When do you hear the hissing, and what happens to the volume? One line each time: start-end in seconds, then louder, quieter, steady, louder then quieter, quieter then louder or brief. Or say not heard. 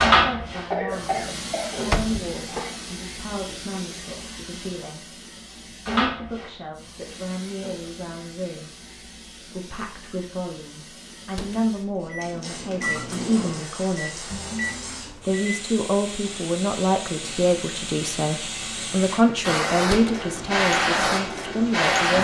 0.0-22.1 quieter then louder.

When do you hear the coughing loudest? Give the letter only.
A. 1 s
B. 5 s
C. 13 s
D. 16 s
A.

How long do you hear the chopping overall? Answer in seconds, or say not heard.
not heard.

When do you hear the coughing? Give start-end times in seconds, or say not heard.
0.7-3.0.